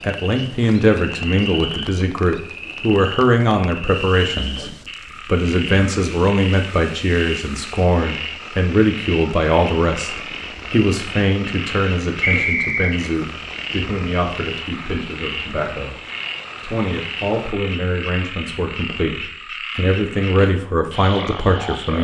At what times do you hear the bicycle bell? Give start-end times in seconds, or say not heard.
not heard.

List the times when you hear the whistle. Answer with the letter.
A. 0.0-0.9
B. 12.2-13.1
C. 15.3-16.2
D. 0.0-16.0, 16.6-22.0
B.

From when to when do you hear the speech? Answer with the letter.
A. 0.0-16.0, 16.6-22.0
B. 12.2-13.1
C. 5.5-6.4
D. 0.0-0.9
A.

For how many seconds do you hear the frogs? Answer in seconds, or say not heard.
22 s.